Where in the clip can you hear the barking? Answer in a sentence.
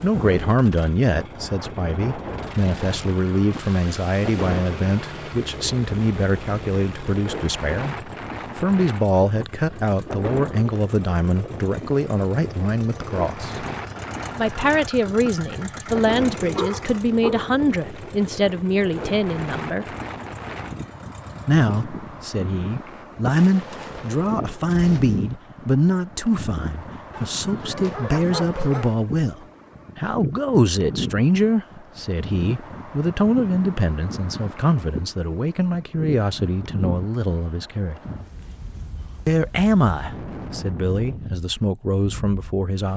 You can hear the barking from 15.6 to 18.0 s and from 27.1 to 28.9 s.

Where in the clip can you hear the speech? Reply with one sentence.
You can hear the speech from 0.0 to 13.7 s, from 14.3 to 19.9 s, from 21.4 to 38.0 s and from 39.2 to 42.9 s.